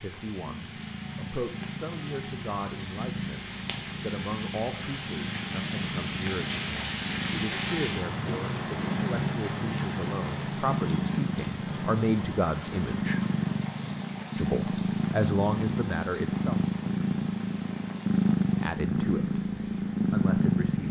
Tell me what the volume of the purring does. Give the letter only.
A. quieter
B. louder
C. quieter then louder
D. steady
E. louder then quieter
B.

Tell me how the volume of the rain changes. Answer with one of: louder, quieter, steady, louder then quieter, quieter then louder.
louder then quieter.